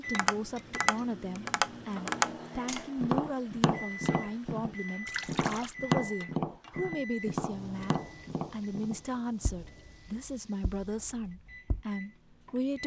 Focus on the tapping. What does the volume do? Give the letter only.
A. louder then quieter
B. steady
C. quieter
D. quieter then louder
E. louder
C.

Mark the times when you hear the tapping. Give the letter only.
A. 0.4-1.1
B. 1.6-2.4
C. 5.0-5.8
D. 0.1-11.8
D.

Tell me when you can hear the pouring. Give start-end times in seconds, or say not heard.
5.0-5.8.